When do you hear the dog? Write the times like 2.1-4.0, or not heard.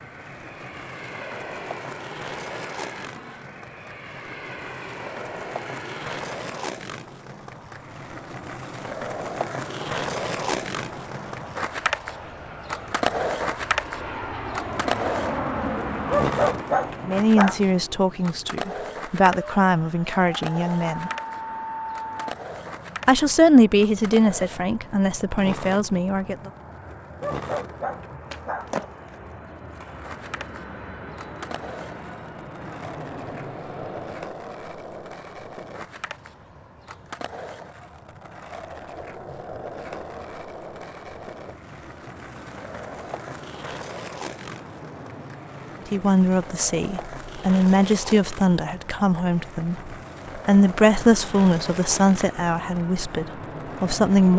16.1-17.6, 27.2-28.7.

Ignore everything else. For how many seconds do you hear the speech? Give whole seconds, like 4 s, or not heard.
16 s.